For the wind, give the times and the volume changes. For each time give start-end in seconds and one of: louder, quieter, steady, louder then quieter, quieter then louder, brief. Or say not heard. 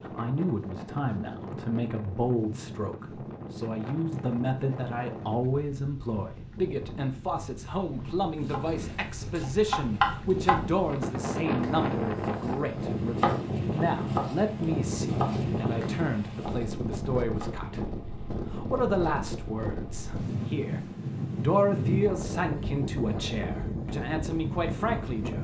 0.0-25.3 louder.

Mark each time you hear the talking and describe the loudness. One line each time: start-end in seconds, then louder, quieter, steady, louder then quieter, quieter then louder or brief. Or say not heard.
0.1-25.3 steady.